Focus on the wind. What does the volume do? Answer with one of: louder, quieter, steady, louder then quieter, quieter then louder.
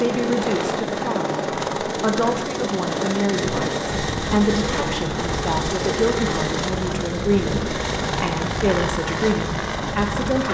steady.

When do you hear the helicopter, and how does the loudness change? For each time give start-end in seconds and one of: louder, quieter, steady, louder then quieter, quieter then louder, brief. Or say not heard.
0.0-10.4 steady.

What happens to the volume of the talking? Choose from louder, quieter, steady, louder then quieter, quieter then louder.
steady.